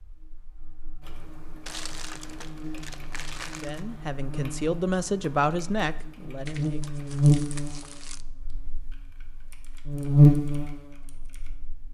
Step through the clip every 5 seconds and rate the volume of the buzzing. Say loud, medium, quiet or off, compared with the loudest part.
quiet, medium, loud.